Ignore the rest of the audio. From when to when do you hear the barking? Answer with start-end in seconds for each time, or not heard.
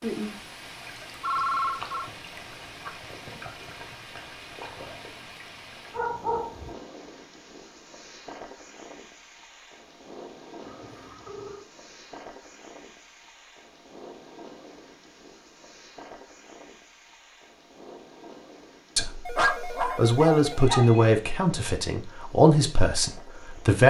5.9-6.8, 19.4-21.1.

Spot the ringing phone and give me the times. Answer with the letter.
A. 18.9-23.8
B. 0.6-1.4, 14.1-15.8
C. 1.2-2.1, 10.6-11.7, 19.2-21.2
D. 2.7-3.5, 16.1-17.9
C.